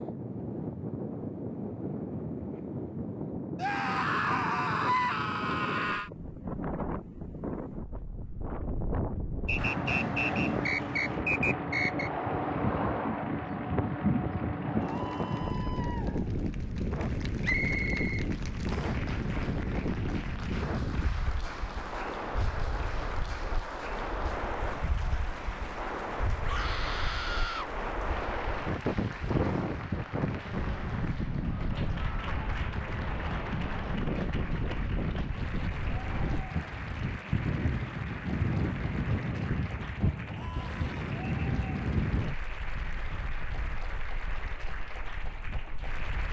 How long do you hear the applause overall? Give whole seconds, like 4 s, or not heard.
37 s.